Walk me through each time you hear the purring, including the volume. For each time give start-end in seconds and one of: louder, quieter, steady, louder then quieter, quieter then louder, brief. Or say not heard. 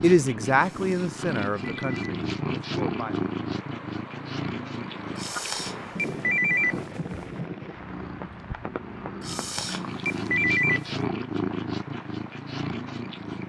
0.0-13.4 quieter then louder.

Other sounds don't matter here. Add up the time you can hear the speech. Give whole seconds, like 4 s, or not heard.
3 s.